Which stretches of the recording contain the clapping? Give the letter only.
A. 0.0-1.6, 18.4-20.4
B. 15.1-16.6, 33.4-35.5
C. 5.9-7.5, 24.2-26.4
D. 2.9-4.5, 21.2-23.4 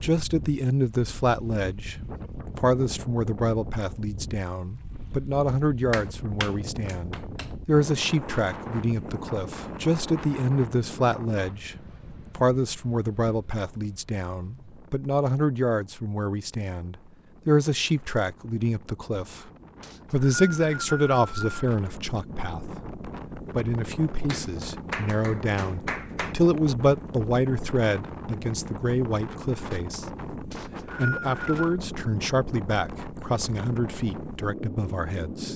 C.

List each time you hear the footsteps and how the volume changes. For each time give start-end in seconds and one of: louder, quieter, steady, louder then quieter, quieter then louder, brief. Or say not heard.
not heard.